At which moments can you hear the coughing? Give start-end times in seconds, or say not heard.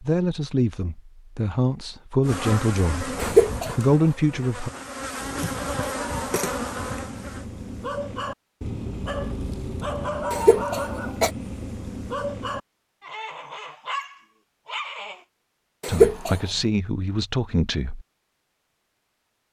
3.2-3.7, 10.3-11.3, 15.8-16.4.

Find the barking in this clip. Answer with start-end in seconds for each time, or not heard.
5.2-15.2.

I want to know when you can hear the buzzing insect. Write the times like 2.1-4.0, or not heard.
2.2-7.5.